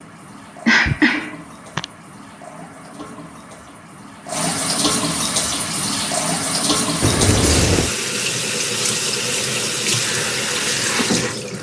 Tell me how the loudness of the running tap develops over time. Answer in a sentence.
The loudness of the running tap goes up.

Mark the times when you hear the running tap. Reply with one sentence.
The running tap can be heard from 0.0 to 11.5 s.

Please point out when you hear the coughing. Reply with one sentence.
The coughing can be heard from 0.7 to 1.9 s and from 7.0 to 7.9 s.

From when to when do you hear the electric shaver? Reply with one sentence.
You can hear the electric shaver from 10.0 to 11.5 s.